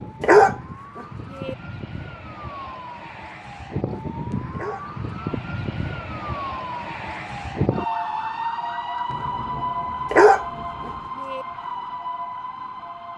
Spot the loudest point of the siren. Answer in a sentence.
The volume of the siren peaks at 8 seconds.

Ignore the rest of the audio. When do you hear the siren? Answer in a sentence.
You can hear the siren from 0.0 to 13.1 s.